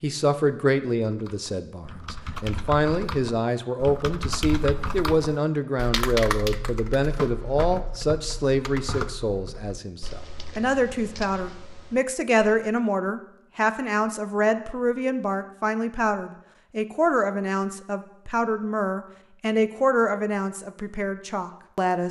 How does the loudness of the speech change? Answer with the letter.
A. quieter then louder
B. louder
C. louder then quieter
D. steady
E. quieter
D.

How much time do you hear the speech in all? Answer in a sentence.
The speech can be heard for 22 seconds in total.